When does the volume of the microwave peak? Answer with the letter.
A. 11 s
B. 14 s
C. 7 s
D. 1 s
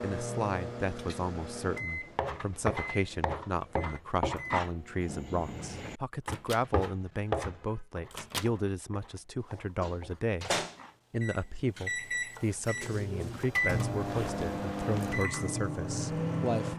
B.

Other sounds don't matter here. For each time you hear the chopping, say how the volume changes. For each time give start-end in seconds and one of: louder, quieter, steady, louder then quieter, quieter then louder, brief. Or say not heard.
1.9-13.5 quieter.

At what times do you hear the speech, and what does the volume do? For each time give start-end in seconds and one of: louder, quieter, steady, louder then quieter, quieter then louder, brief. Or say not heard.
0.0-16.7 steady.